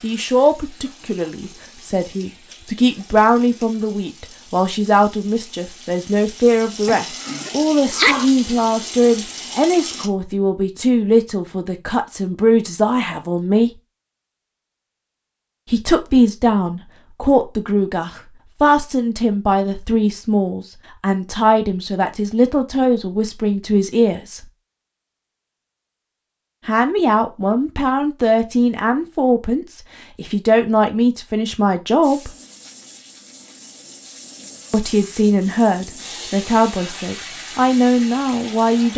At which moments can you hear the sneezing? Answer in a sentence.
You can hear the sneezing from 6.8 to 8.3 s.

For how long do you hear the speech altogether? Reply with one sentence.
You can hear the speech for 32 seconds altogether.